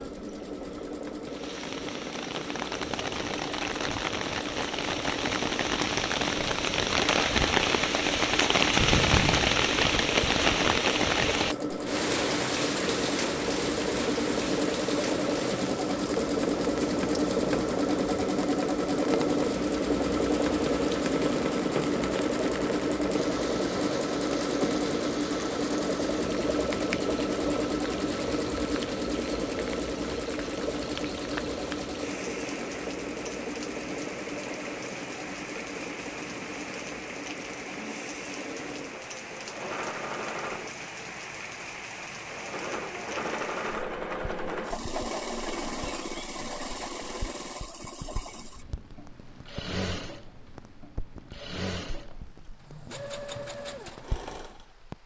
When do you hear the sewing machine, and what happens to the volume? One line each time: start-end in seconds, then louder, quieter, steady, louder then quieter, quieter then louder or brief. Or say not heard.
0.0-54.8 louder then quieter.